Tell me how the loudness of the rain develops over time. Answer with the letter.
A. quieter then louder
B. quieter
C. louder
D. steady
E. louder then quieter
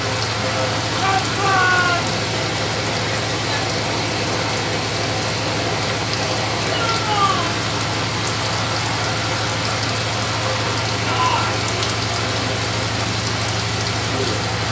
D.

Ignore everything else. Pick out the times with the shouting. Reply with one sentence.
The shouting can be heard from 1.0 to 2.1 s, from 6.7 to 7.5 s and from 11.0 to 11.7 s.